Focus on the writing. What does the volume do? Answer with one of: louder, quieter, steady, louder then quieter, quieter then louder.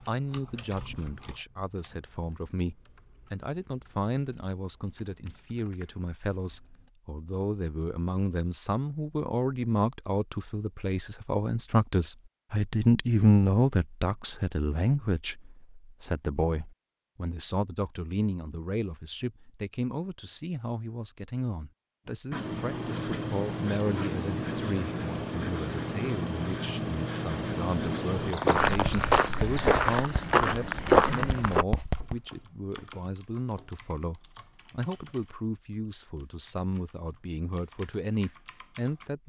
quieter.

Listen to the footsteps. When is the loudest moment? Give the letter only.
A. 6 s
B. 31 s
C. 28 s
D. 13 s
B.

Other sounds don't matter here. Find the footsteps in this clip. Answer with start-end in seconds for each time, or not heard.
28.2-31.6.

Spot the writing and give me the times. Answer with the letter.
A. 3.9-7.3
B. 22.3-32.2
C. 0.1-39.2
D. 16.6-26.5
B.